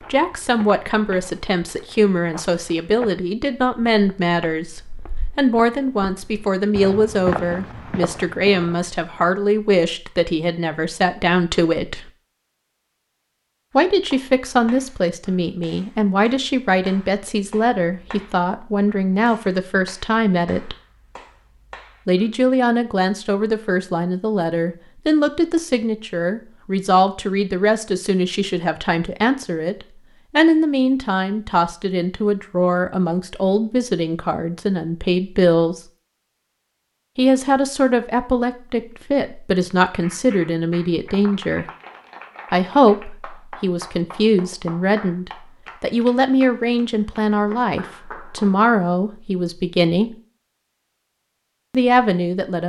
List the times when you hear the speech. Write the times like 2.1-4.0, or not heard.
0.1-12.1, 13.8-20.8, 22.1-35.8, 37.1-41.6, 42.5-50.1, 51.7-52.6.